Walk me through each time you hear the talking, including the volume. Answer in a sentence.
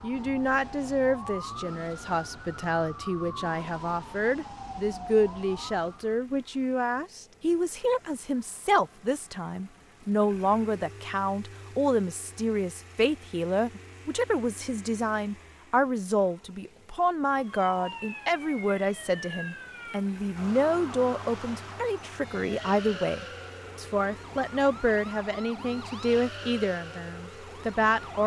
The talking can be heard from 0.0 to 28.2 s, at a steady volume.